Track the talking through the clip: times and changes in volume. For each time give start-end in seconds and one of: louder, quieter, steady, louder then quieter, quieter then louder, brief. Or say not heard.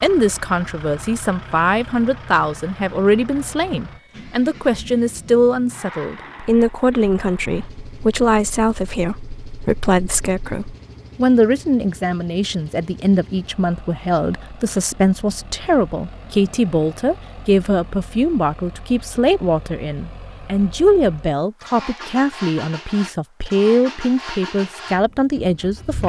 0.0-26.0 steady.